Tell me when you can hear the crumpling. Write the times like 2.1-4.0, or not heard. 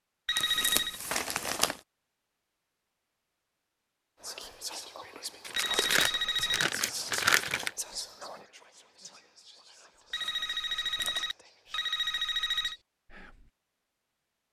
0.3-1.8, 5.5-7.7, 10.2-11.3.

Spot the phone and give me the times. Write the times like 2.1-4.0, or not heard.
0.2-1.0, 5.5-6.7, 10.1-12.8.